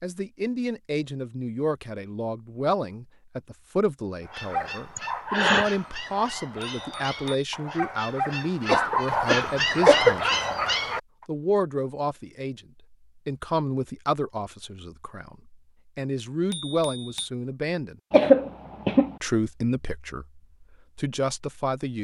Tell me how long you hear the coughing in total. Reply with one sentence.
The coughing can be heard for 3 seconds in total.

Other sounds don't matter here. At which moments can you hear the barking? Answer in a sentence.
The barking can be heard from 4.2 to 11.2 s.